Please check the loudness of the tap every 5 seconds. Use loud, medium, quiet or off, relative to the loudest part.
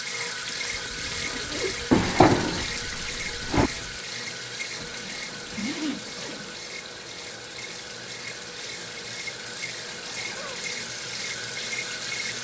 loud, medium, loud.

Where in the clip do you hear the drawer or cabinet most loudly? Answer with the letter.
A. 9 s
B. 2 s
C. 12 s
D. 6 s
B.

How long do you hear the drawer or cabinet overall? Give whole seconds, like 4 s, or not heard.
2 s.